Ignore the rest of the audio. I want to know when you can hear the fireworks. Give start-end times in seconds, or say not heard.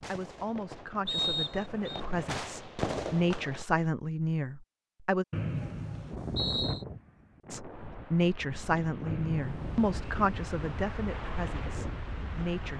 0.0-3.6.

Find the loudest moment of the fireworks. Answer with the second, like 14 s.
3 s.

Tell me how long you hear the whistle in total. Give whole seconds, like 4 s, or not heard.
3 s.